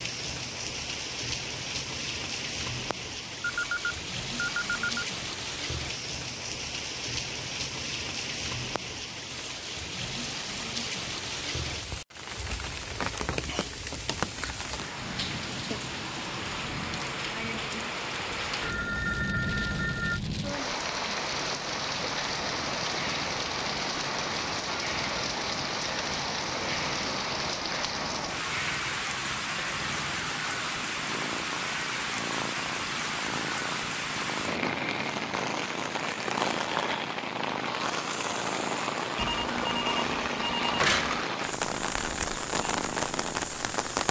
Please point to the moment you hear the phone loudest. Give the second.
41 s.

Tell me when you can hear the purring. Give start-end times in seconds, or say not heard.
21.1-44.0.